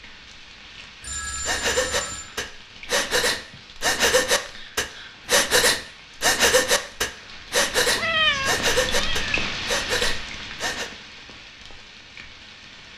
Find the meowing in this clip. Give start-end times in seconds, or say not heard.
8.0-9.4.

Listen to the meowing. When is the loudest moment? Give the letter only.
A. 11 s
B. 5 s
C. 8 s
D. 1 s
C.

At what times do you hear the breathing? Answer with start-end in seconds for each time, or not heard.
1.4-10.9.